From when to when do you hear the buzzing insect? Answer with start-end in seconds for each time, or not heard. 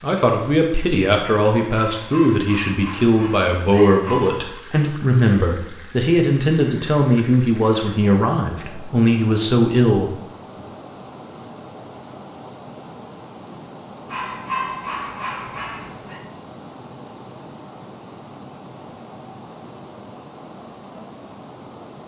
not heard.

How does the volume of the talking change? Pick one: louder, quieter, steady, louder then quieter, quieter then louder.
steady.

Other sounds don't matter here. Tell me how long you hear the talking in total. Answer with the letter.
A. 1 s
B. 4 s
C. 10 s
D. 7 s
C.